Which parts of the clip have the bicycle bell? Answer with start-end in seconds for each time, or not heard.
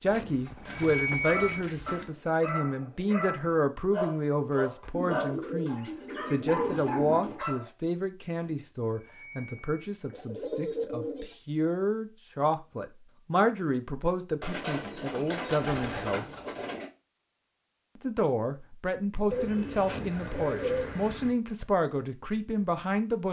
0.1-1.6, 8.3-10.2, 19.9-20.5.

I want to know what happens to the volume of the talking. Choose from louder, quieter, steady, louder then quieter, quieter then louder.
steady.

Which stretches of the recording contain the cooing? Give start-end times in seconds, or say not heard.
0.1-2.0, 4.9-7.4, 10.1-11.3, 14.4-16.9, 19.3-21.3.